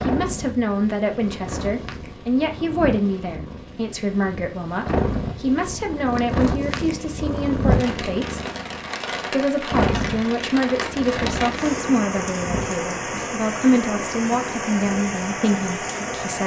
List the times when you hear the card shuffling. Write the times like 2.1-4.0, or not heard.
not heard.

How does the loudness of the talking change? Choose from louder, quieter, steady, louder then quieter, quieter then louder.
steady.